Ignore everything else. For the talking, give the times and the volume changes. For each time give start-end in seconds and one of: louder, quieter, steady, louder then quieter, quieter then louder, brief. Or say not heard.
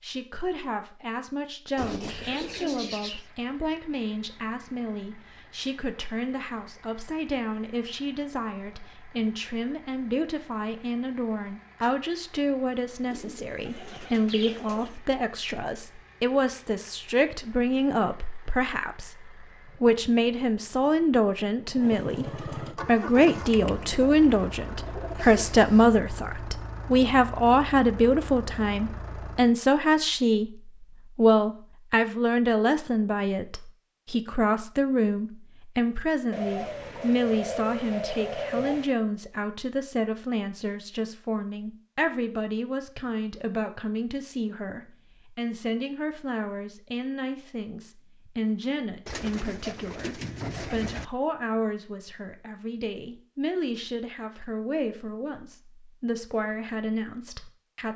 0.0-57.9 louder then quieter.